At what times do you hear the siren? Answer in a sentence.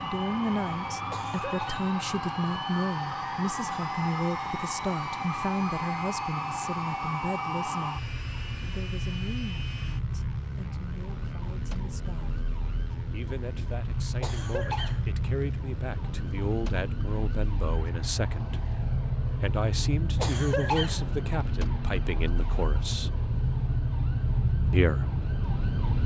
You can hear the siren from 0.0 to 26.0 s.